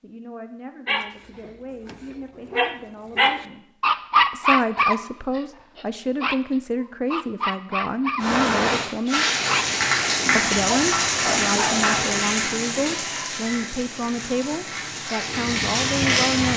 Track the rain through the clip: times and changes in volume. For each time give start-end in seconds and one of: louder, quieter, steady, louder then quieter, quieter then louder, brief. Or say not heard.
8.2-16.5 quieter then louder.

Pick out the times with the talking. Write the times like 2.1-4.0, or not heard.
0.0-9.2, 10.3-16.5.